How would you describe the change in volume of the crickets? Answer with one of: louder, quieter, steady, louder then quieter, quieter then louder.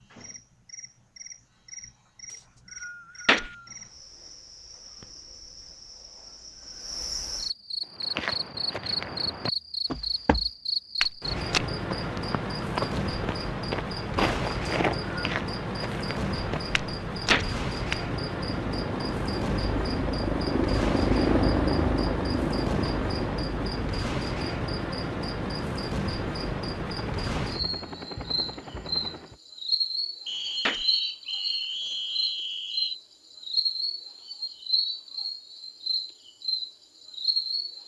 louder.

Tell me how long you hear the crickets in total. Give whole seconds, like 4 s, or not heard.
38 s.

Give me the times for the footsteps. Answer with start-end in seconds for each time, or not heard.
8.0-18.0.